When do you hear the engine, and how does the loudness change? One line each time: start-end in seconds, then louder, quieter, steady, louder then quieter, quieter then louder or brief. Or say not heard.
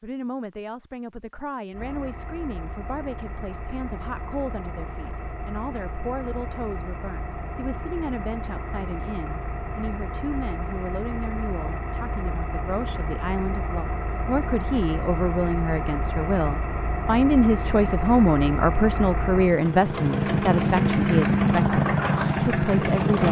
1.7-23.2 louder.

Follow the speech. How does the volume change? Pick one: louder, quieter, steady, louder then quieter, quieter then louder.
louder.